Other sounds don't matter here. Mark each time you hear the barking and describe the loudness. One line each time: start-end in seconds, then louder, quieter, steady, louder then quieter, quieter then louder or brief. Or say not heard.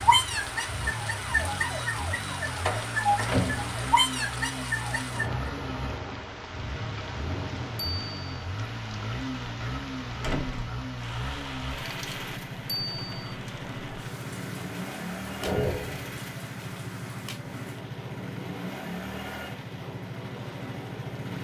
not heard.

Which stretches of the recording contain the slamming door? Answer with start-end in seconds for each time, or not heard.
2.6-3.9, 10.2-10.8, 15.4-16.1.